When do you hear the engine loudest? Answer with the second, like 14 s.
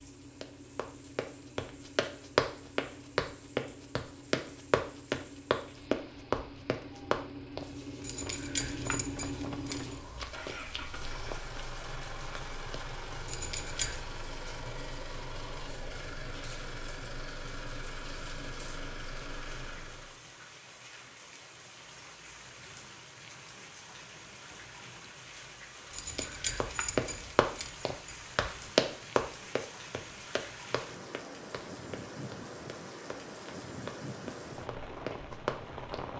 9 s.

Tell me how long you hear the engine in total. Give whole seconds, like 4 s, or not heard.
20 s.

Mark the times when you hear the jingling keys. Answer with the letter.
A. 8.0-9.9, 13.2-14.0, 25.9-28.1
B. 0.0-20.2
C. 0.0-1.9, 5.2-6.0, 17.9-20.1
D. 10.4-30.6
A.